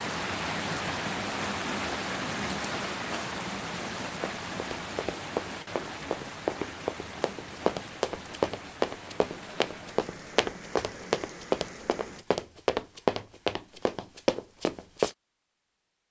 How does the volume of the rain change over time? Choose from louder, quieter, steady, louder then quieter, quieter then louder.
quieter.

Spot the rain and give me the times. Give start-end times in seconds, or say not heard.
0.0-12.2.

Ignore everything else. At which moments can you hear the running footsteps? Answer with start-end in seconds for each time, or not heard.
4.2-15.2.